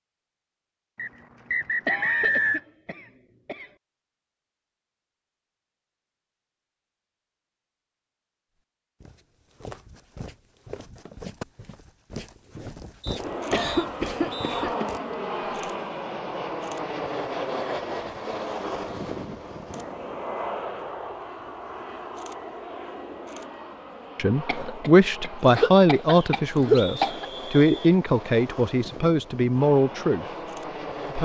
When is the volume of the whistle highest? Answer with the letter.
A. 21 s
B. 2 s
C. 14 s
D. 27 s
B.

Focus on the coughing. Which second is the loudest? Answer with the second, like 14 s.
27 s.